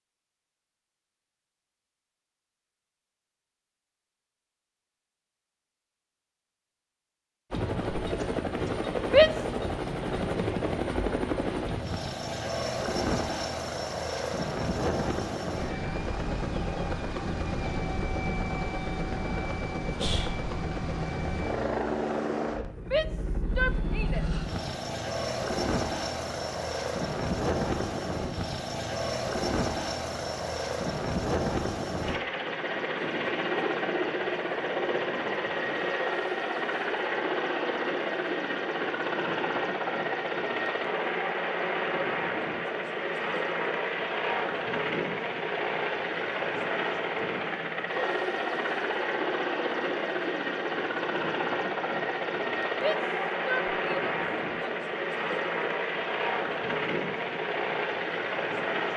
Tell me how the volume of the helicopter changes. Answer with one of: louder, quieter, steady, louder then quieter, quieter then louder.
steady.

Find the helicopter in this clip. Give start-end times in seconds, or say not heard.
7.5-58.9.